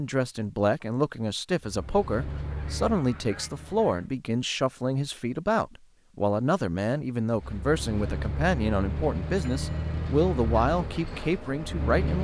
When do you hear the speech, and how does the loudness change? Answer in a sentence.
The speech can be heard from 0.0 to 12.1 s, at a steady volume.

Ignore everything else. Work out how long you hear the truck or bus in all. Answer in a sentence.
You can hear the truck or bus for 7 seconds altogether.